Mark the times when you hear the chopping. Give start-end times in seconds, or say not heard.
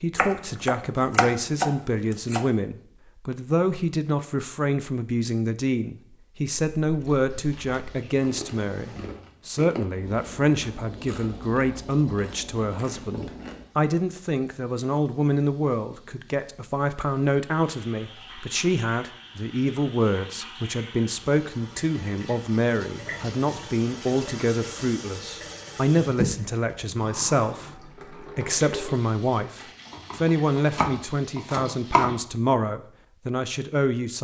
0.1-2.5, 29.9-32.1.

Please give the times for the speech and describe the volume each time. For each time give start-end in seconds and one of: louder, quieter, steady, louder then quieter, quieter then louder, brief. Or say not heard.
0.0-34.1 steady.